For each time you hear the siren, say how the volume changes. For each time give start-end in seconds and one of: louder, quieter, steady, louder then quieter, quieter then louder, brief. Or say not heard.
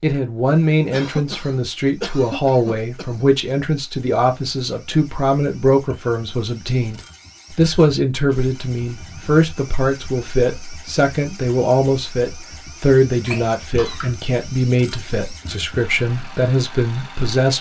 not heard.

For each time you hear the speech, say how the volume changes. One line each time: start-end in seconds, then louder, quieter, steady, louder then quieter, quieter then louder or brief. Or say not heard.
0.0-17.5 steady.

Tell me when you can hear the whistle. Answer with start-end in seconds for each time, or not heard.
not heard.